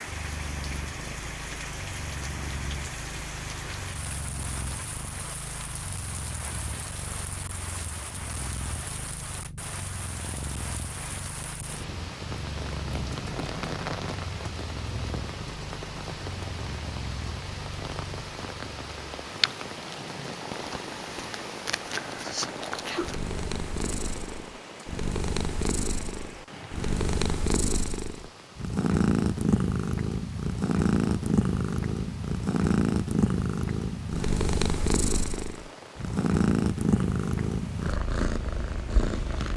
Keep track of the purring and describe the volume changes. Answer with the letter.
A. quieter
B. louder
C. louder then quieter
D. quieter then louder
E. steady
B.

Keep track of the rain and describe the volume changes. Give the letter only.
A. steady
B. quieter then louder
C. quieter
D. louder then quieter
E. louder
C.